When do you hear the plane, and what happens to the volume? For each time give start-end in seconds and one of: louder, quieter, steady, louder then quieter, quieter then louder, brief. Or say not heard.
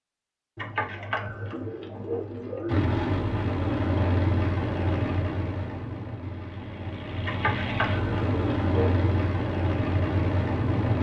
2.6-10.9 quieter then louder.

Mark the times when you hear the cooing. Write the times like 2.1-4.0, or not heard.
0.6-2.8, 7.2-9.0.